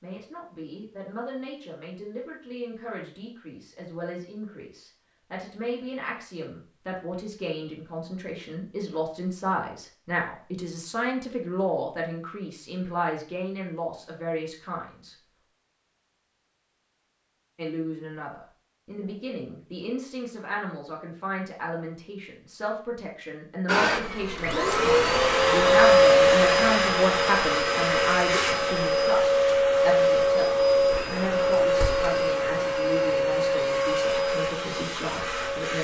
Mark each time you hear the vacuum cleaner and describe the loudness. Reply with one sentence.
The vacuum cleaner can be heard from 23.6 to 35.7 s, getting quieter.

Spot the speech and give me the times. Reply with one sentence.
The speech can be heard from 0.0 to 15.2 s and from 17.6 to 35.7 s.